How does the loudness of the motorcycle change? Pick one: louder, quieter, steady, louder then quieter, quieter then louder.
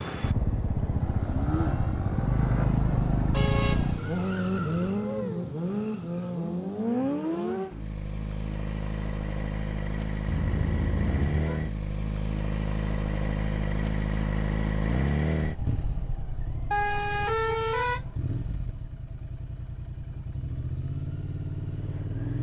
quieter.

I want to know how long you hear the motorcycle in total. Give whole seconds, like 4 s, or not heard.
22 s.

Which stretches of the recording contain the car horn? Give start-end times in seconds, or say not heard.
3.3-5.0, 10.2-11.6, 16.7-18.1.